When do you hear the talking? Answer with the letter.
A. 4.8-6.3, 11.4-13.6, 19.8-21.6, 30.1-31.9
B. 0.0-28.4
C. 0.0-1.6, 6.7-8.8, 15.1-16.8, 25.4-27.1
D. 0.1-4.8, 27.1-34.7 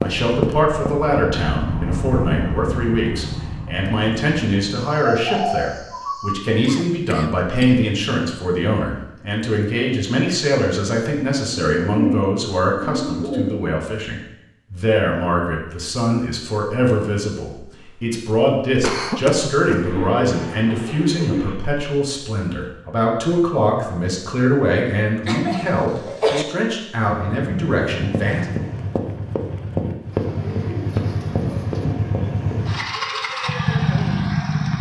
B.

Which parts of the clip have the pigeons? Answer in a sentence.
The pigeons can be heard from 4.8 to 6.3 s, from 11.4 to 13.6 s, from 19.8 to 21.6 s and from 30.1 to 31.9 s.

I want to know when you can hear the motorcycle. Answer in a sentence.
You can hear the motorcycle from 0.1 to 4.8 s and from 27.1 to 34.7 s.